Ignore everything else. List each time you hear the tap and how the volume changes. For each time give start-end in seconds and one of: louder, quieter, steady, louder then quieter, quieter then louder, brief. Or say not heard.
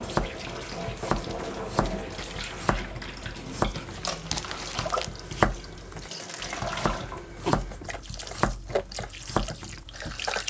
0.0-10.4 steady.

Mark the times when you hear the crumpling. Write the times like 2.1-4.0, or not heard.
4.3-5.1.